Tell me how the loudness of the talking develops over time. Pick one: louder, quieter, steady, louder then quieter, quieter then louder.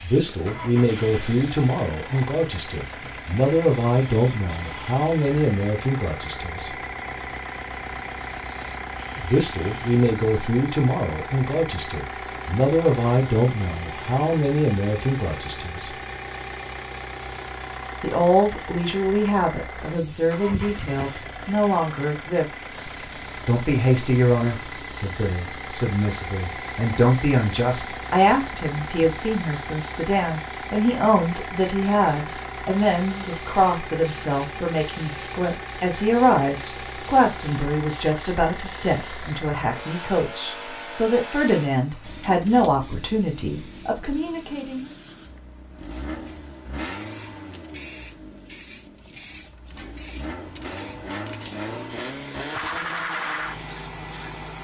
steady.